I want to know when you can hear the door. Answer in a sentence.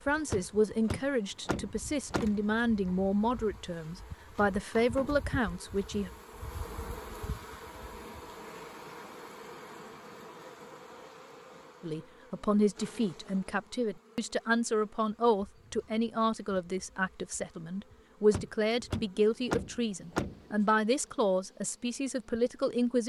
The door can be heard from 0.3 to 2.5 s and from 18.3 to 20.4 s.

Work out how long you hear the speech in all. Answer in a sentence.
You can hear the speech for 17 seconds altogether.